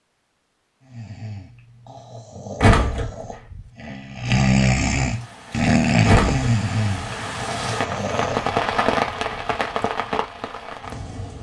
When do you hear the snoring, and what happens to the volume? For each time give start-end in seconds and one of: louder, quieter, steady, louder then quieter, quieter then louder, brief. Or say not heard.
0.8-8.6 louder then quieter.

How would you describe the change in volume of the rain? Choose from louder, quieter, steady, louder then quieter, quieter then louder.
louder then quieter.